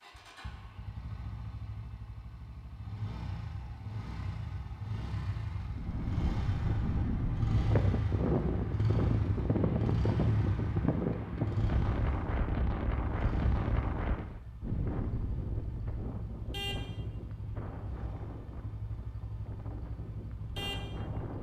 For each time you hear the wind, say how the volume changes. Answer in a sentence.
You can hear the wind from 5.7 to 21.3 s, getting quieter.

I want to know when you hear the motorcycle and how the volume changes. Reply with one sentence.
The motorcycle can be heard from 0.0 to 21.3 s, getting louder then quieter.